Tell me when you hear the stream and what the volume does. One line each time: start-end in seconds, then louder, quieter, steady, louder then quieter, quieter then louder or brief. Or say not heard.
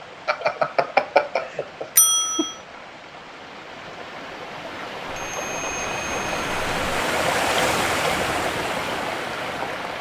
0.0-9.9 louder.